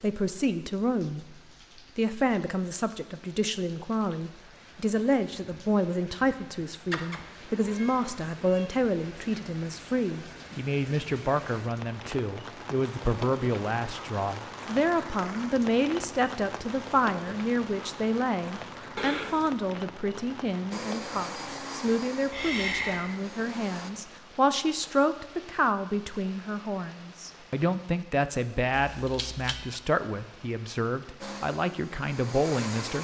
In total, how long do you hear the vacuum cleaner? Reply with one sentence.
You can hear the vacuum cleaner for 5 seconds altogether.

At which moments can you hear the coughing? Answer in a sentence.
The coughing can be heard from 22.3 to 23.1 s.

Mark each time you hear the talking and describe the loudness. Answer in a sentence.
You can hear the talking briefly from 0.0 to 1.4 s; and from 1.9 to 32.9 s, at a steady volume.